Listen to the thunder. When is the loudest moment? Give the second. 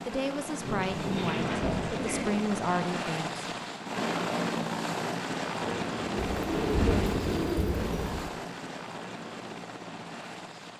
7 s.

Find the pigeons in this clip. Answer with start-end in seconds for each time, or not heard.
0.6-2.4, 5.5-7.5.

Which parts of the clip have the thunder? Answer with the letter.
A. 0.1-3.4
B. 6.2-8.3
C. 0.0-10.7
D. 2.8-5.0
B.